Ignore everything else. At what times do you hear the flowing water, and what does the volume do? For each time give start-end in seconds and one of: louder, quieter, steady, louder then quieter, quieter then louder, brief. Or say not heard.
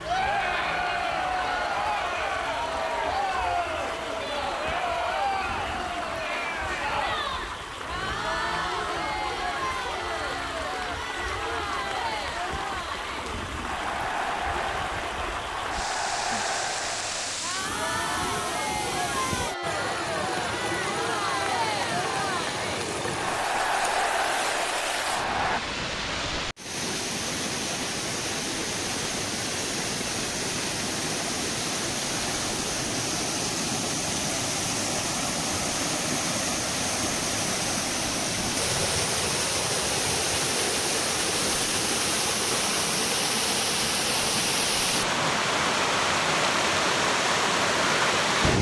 0.0-48.5 louder.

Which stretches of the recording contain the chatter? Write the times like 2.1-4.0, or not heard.
0.0-25.6.